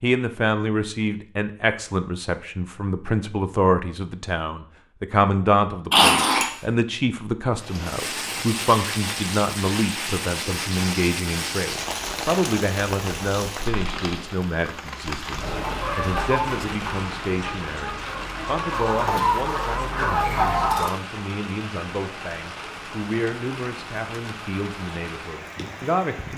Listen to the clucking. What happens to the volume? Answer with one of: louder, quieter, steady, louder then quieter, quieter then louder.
quieter then louder.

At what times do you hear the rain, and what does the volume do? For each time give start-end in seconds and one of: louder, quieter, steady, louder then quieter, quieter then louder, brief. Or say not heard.
7.5-26.3 quieter.